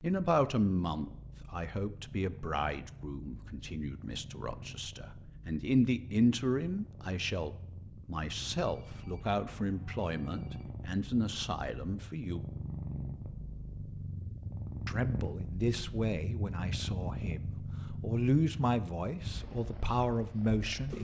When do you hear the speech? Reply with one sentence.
You can hear the speech from 0.0 to 12.4 s and from 14.8 to 20.9 s.